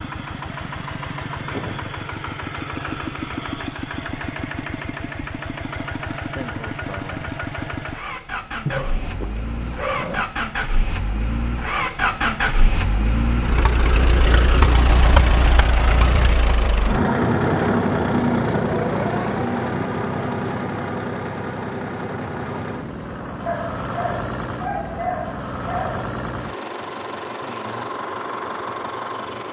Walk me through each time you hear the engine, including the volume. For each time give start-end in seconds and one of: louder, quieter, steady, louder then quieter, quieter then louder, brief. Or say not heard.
0.0-29.4 louder then quieter.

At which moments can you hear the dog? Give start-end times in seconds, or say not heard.
8.7-10.3, 23.4-26.1.